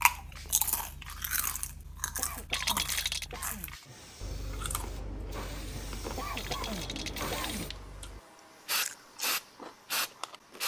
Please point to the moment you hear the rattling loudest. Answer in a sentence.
The loudest moment of the rattling is at 3 seconds.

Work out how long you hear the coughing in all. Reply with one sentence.
You can hear the coughing for 3 seconds altogether.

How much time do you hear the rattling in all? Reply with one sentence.
The rattling can be heard for 2 seconds in total.